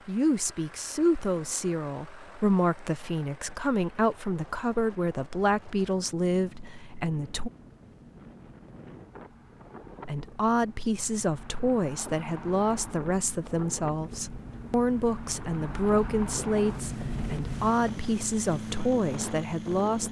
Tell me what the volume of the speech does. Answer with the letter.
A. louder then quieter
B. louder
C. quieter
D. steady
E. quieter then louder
D.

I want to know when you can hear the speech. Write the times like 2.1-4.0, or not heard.
0.1-7.5, 10.1-20.0.